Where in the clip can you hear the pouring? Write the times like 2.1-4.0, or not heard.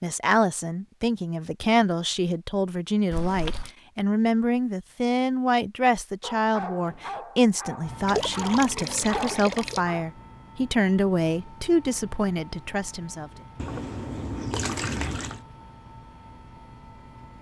3.1-3.7, 8.1-9.8, 13.6-15.4.